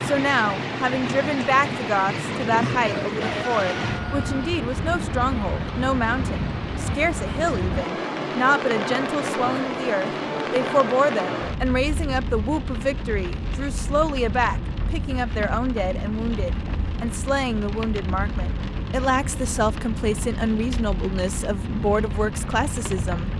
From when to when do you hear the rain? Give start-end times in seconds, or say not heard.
0.0-23.3.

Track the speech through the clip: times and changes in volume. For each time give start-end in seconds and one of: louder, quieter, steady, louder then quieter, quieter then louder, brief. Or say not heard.
0.0-23.3 steady.